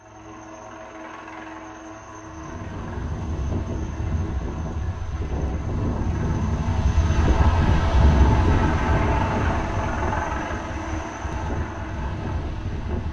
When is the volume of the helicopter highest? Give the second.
9 s.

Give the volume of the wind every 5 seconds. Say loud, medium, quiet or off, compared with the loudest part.
medium, loud, medium.